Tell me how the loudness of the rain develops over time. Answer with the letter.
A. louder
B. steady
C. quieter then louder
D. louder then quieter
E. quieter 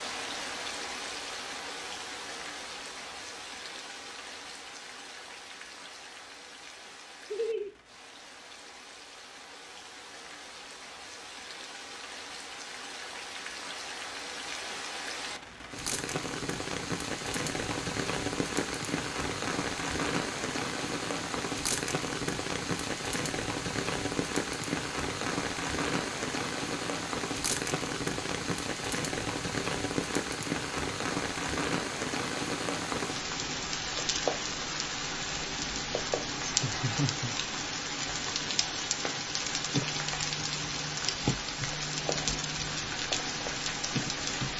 A.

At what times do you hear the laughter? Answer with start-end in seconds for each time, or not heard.
7.3-7.7, 36.5-37.3.